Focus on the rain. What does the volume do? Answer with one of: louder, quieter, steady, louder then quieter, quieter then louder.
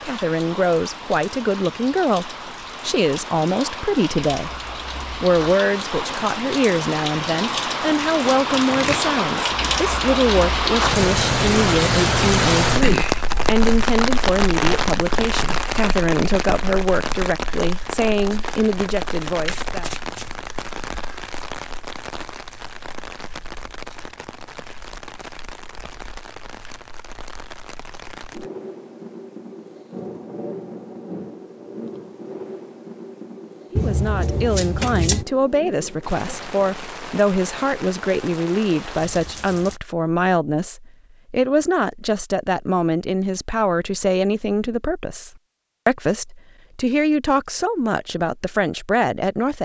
louder then quieter.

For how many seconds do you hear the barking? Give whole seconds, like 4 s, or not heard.
not heard.